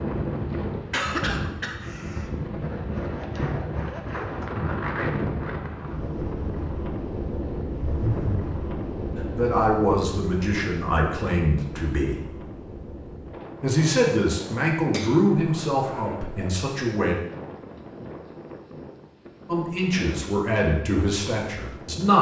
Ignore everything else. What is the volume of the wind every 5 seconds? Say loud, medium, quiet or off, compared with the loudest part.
loud, loud, medium, medium, medium.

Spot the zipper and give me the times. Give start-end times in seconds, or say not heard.
2.6-4.6, 7.8-8.5, 15.3-16.7.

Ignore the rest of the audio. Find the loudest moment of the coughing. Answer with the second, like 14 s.
1 s.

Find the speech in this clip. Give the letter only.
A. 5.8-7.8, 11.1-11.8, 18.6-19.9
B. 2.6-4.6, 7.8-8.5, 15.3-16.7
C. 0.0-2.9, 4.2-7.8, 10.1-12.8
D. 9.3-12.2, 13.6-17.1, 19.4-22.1
D.